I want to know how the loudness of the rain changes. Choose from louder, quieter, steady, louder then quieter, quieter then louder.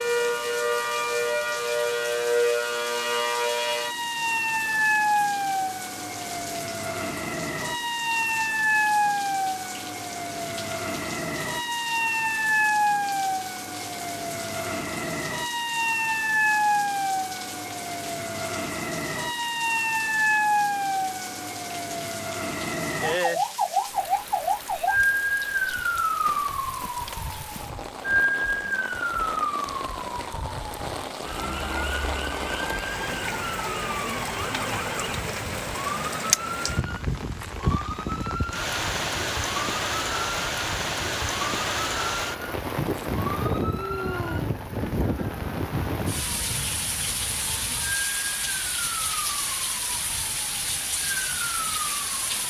louder.